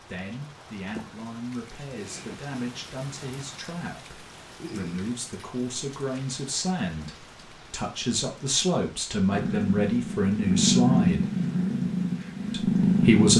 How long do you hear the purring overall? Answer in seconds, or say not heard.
4 s.